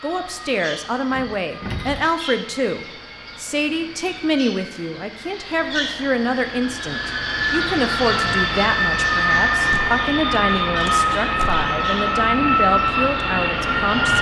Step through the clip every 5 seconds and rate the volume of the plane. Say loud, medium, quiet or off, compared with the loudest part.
quiet, loud, loud.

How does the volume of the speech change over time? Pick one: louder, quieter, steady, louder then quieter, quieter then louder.
steady.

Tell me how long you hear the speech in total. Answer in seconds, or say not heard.
14 s.